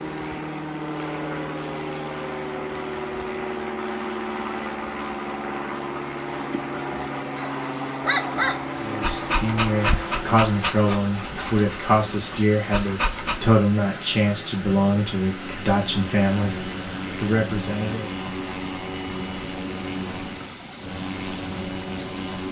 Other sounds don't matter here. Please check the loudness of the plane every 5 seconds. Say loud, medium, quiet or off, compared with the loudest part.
loud, loud, medium, loud, loud.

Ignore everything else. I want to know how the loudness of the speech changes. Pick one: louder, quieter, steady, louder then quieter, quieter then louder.
steady.